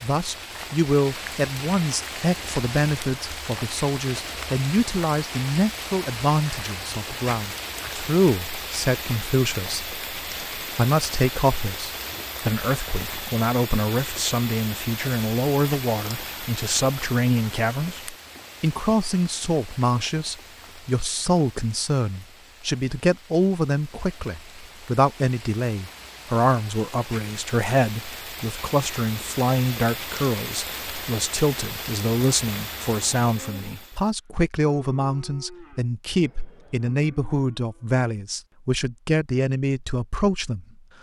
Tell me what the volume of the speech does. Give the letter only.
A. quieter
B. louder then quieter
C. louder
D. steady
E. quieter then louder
D.